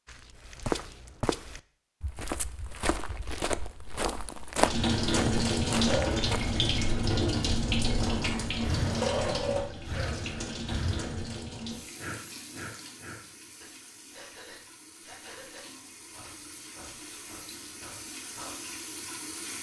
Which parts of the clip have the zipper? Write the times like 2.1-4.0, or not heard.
7.9-9.3.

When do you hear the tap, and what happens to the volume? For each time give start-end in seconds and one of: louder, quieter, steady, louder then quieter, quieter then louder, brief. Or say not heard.
4.5-19.5 quieter then louder.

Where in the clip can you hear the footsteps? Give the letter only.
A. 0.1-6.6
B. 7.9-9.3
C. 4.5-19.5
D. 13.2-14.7
A.